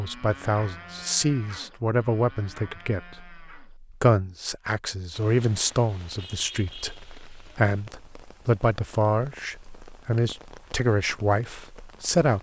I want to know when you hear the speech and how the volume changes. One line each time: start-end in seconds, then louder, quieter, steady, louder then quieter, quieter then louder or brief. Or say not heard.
0.0-12.3 steady.